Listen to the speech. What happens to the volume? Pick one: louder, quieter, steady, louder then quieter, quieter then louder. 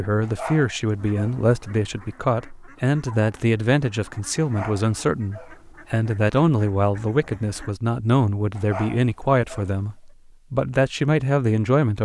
steady.